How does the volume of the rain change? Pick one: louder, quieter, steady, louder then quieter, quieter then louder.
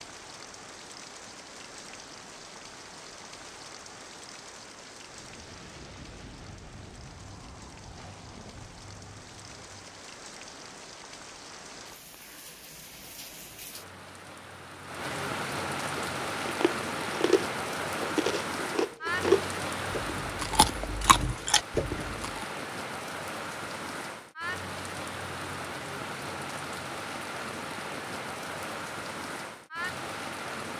louder.